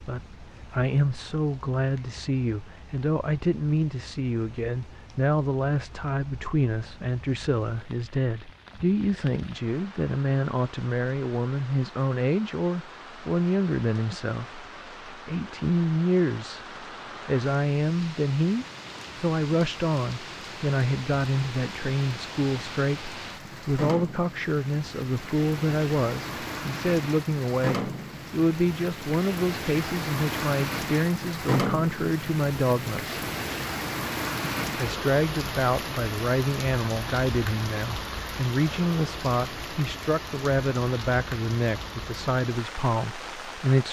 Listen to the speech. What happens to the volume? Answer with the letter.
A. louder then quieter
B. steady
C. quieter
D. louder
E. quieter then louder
B.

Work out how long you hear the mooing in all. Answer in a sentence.
The mooing can't be heard in this clip.